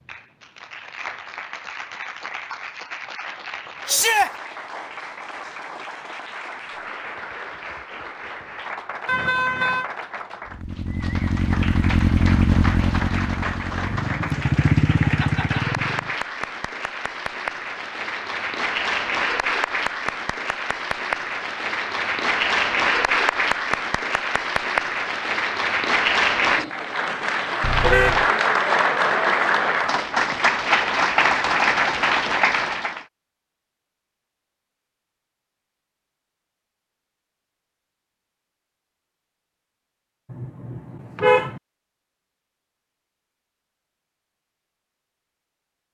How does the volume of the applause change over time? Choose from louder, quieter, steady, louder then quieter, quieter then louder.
louder.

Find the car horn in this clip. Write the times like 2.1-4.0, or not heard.
9.1-9.9, 27.6-28.2, 40.3-41.6.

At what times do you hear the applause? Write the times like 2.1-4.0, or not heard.
0.0-33.0.